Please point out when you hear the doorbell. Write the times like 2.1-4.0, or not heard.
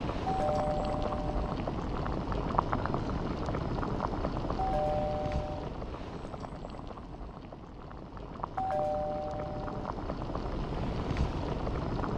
0.2-1.3, 4.5-5.7, 8.6-9.9.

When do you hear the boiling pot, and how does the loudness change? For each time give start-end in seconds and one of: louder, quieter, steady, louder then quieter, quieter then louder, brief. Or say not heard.
0.0-12.1 quieter then louder.